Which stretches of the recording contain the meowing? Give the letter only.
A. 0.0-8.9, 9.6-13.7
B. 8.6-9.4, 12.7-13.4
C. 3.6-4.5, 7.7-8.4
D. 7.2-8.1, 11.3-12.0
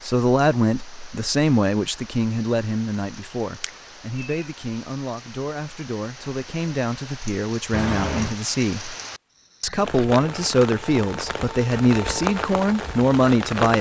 C.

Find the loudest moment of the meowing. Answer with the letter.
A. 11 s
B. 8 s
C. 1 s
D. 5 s
B.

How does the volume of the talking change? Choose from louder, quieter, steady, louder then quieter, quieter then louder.
quieter then louder.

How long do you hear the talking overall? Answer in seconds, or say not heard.
13 s.